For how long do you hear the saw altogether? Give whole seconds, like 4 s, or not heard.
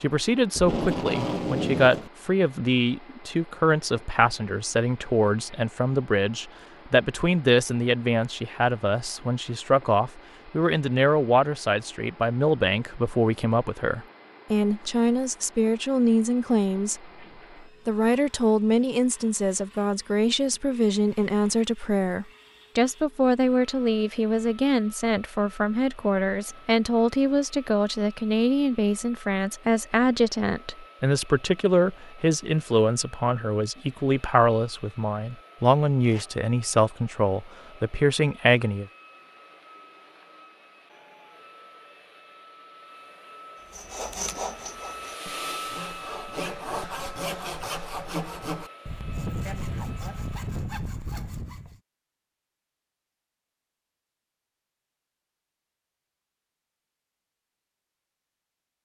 8 s.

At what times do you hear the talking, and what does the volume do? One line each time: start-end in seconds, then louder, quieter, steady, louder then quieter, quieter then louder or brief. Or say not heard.
0.0-17.0 steady
17.9-38.9 steady.